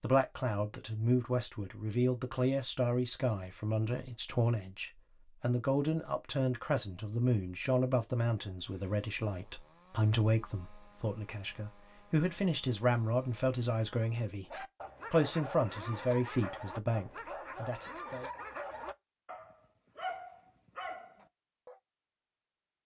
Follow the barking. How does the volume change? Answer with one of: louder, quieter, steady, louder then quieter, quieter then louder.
steady.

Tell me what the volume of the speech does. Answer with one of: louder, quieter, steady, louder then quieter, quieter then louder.
steady.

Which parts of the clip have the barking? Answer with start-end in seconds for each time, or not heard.
14.4-21.8.